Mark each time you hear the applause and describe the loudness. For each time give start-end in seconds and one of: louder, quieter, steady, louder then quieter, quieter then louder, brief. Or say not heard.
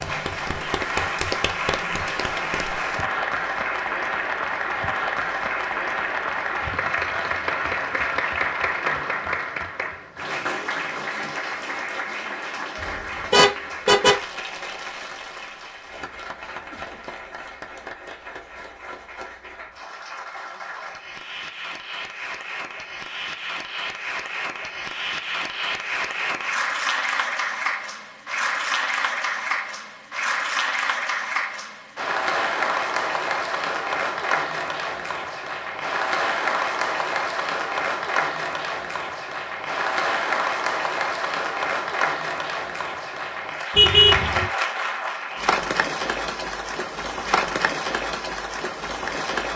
0.0-49.5 quieter then louder.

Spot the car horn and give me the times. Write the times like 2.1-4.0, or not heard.
13.3-14.2, 43.8-44.5.